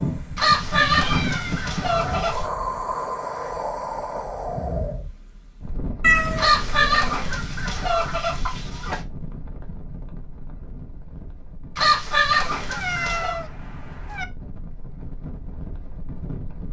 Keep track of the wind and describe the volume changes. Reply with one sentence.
The loudness of the wind goes down.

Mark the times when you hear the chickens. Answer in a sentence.
The chickens can be heard from 0.3 to 2.5 s, from 6.3 to 9.0 s and from 11.8 to 13.4 s.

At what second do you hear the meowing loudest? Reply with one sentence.
The volume of the meowing peaks at 6 seconds.